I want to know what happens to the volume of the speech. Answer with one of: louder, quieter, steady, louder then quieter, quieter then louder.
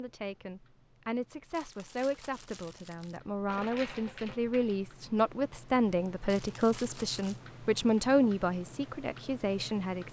louder.